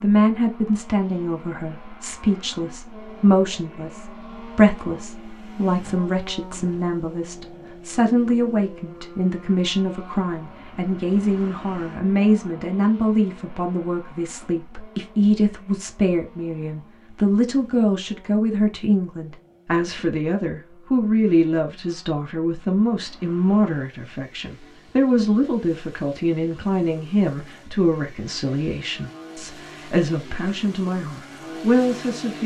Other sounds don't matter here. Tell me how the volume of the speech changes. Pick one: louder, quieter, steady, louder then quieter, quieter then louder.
steady.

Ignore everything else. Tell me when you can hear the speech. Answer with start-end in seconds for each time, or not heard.
0.0-32.4.